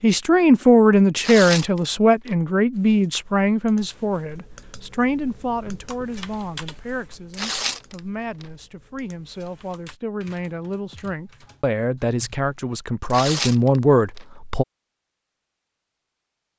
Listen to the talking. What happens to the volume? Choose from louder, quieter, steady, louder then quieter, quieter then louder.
quieter then louder.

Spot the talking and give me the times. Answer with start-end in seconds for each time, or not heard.
0.0-14.7.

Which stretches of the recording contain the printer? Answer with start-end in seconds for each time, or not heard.
not heard.